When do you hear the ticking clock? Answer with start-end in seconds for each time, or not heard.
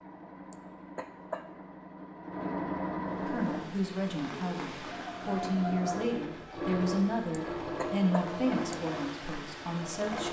not heard.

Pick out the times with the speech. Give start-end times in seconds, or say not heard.
3.2-10.2.